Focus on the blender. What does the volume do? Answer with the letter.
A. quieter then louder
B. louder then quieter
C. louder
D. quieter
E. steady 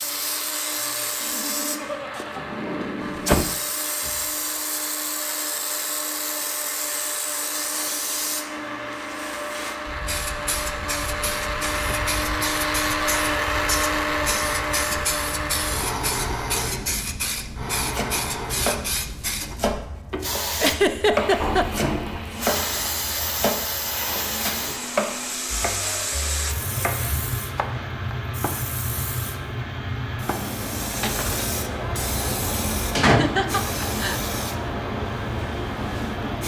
B.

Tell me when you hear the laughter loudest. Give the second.
21 s.